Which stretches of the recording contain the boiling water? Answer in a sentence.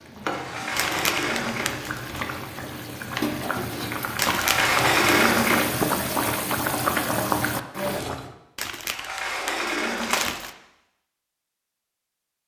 The boiling water can be heard from 0.0 to 8.3 s.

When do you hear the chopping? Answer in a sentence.
The chopping can't be heard in this clip.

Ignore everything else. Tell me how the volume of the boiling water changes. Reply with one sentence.
The loudness of the boiling water goes up.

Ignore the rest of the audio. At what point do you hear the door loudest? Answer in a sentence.
The loudest moment of the door is at 5 seconds.